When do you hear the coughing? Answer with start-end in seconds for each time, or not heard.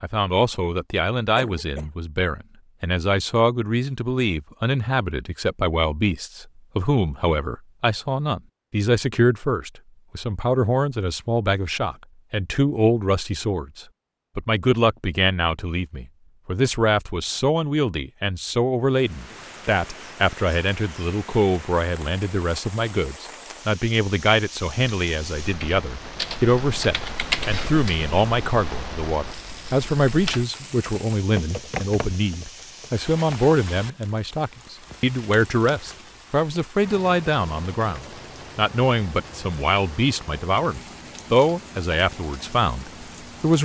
1.4-1.9.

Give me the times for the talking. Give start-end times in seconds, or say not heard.
0.0-43.6.